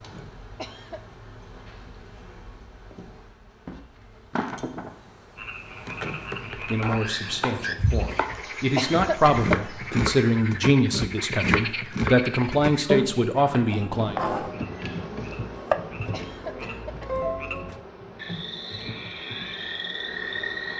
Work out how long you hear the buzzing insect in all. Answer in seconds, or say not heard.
17 s.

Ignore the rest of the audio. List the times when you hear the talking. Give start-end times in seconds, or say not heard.
6.7-14.2.